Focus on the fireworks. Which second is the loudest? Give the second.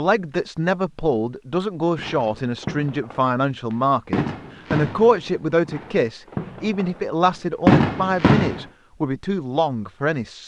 8 s.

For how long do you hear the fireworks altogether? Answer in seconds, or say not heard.
6 s.